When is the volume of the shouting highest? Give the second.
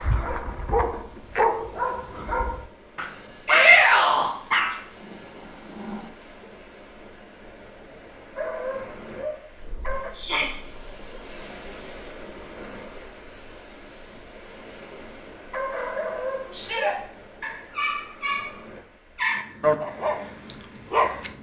4 s.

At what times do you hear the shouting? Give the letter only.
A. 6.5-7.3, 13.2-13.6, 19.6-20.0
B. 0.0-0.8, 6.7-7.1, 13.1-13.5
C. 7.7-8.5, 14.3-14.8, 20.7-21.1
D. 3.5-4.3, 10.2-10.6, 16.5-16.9
D.